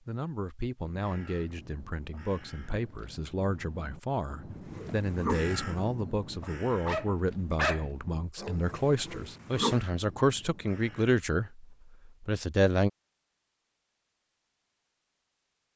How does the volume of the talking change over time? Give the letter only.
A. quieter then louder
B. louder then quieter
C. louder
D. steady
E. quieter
C.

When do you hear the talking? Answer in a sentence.
The talking can be heard from 0.1 to 12.9 s.